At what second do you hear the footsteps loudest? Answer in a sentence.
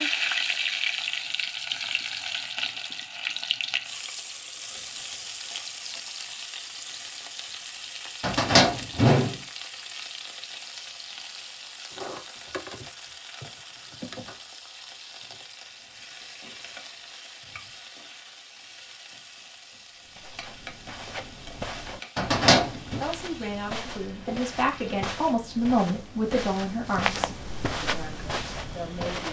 The volume of the footsteps peaks at 27 seconds.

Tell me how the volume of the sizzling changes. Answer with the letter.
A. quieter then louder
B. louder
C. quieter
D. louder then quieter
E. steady
C.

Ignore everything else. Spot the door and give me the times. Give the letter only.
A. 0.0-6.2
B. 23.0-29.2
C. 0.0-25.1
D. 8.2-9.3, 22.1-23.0
D.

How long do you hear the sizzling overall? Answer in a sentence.
The sizzling can be heard for 25 seconds in total.